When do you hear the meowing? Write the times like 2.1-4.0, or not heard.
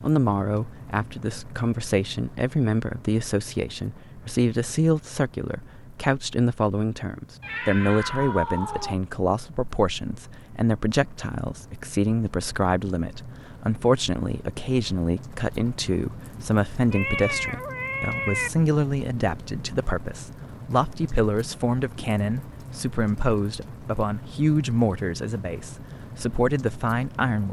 7.4-8.9, 16.9-18.5.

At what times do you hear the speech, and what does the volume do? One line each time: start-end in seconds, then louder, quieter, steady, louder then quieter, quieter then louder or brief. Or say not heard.
0.0-27.4 steady.